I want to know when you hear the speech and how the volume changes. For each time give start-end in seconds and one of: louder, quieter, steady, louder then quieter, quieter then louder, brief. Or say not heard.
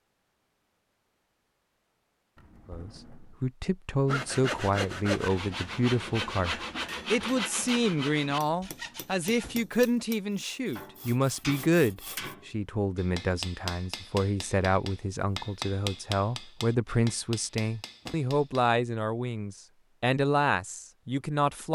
2.6-21.6 steady.